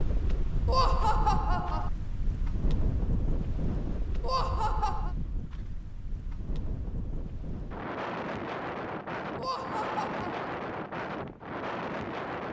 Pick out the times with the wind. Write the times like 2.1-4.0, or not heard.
0.0-12.4.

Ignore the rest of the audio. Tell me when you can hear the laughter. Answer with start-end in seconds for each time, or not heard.
0.7-1.9, 4.2-5.2, 9.3-10.5.